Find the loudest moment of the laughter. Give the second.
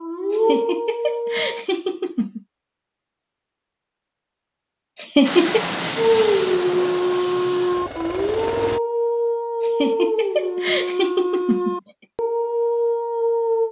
5 s.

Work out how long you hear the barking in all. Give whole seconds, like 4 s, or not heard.
9 s.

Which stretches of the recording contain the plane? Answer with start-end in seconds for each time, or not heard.
5.2-8.8.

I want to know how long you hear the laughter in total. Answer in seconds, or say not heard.
5 s.